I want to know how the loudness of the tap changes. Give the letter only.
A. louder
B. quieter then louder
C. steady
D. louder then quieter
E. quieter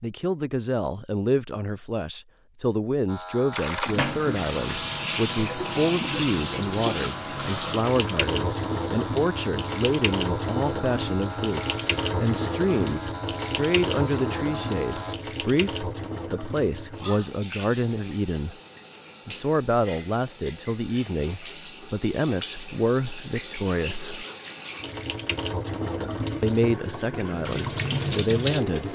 B.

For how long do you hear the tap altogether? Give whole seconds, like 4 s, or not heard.
25 s.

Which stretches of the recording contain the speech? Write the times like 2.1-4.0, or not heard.
0.0-18.6, 19.2-24.2, 26.4-28.8.